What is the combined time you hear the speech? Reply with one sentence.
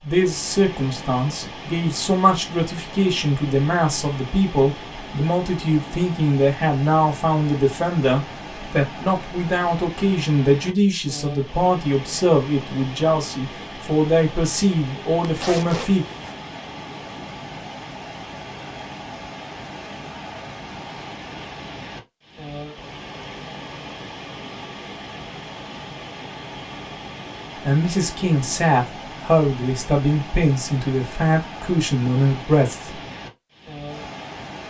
You can hear the speech for 21 seconds altogether.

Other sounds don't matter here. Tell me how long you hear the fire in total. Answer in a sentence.
The fire can't be heard in this clip.